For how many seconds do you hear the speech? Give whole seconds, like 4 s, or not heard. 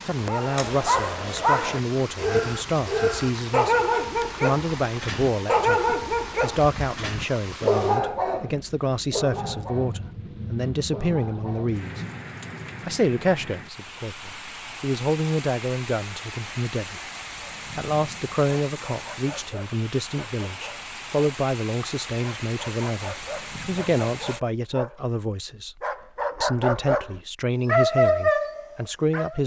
27 s.